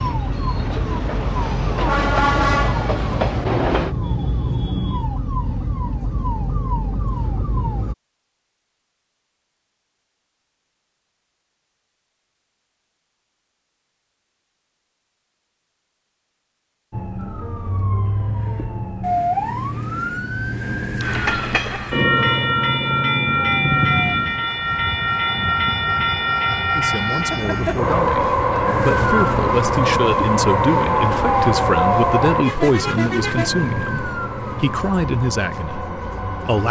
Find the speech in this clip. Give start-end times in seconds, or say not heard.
26.8-36.6.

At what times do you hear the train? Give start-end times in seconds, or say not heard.
0.0-4.0, 21.0-36.6.